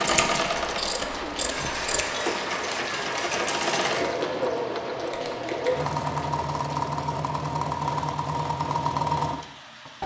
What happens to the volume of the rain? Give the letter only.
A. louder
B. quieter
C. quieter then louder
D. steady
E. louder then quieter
B.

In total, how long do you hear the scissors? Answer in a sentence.
The scissors can be heard for 3 seconds in total.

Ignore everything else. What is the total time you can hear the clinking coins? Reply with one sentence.
You can hear the clinking coins for 3 seconds altogether.